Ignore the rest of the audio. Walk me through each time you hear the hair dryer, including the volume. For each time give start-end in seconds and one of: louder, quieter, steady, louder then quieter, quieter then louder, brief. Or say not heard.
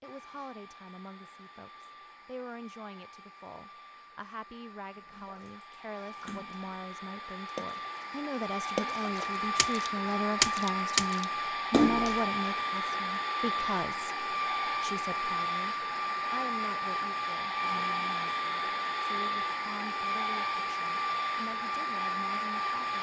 0.0-22.9 louder.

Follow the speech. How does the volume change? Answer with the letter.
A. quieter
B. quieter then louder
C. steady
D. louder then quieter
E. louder
D.